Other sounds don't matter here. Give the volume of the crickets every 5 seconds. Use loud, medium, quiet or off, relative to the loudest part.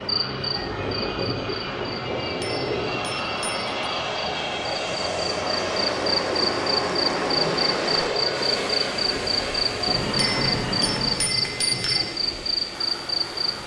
medium, loud, loud.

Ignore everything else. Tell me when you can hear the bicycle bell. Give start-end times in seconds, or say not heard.
2.4-3.8, 10.2-12.1.